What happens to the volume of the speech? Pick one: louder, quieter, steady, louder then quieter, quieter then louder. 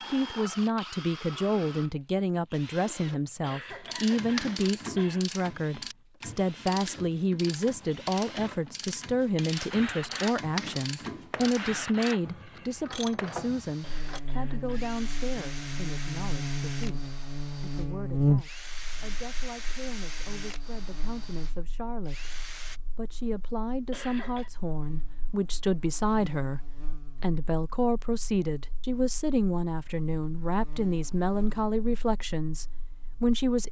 quieter then louder.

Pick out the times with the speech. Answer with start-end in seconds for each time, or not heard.
0.1-33.6.